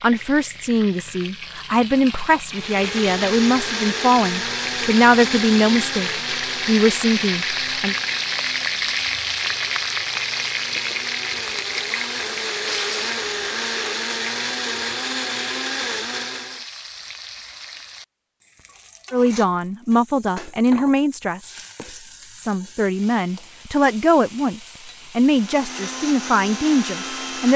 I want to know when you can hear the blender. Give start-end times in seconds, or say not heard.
2.5-16.6, 25.2-27.5.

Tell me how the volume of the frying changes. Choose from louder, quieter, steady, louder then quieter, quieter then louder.
louder then quieter.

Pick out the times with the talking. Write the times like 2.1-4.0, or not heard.
0.0-8.0, 19.1-27.5.